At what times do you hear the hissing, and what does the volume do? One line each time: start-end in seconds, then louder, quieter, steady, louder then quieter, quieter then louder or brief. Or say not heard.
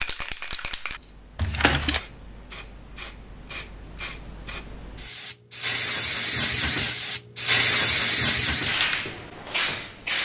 0.0-10.1 louder.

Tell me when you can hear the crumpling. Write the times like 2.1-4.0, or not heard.
1.4-2.0.